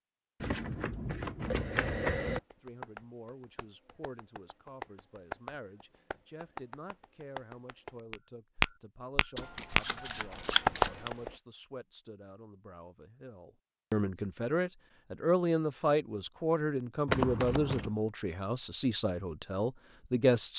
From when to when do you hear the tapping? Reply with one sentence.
You can hear the tapping from 2.2 to 9.8 s and from 10.4 to 11.3 s.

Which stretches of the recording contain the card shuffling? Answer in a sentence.
You can hear the card shuffling from 0.4 to 2.4 s, from 9.3 to 11.1 s and from 17.1 to 17.9 s.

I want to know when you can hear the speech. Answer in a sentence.
You can hear the speech from 2.6 to 20.5 s.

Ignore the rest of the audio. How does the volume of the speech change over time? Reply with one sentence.
The volume of the speech goes up.